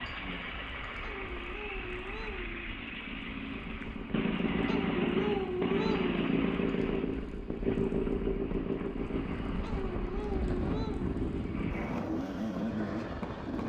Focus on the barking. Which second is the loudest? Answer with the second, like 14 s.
5 s.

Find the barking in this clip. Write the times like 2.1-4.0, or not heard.
1.0-2.6, 4.7-6.3, 9.6-11.2.